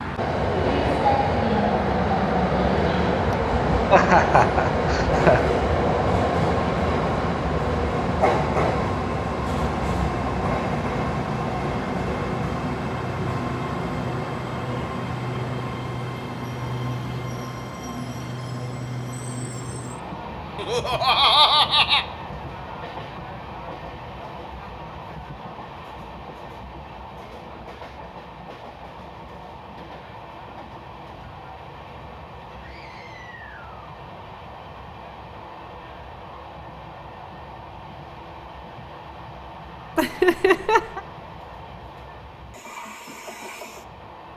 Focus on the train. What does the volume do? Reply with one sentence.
The loudness of the train goes down.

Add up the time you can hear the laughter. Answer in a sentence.
The laughter can be heard for 4 seconds in total.